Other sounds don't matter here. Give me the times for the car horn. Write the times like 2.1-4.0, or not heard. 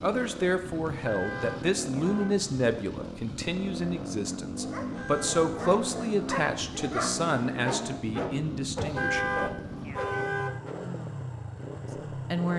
0.9-2.4, 4.8-5.5, 8.8-10.6.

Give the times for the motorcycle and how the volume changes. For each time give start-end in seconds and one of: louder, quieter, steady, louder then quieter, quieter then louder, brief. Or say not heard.
0.0-12.5 steady.